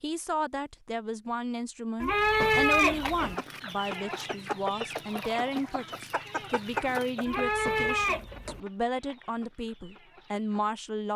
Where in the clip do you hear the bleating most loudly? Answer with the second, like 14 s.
3 s.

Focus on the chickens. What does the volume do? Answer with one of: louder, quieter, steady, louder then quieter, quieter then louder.
quieter.